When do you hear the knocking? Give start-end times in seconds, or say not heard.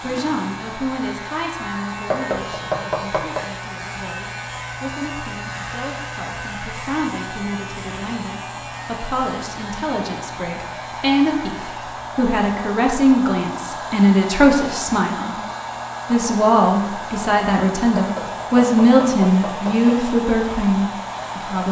2.1-3.5, 17.9-19.9.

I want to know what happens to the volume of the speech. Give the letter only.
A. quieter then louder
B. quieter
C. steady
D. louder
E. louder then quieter
D.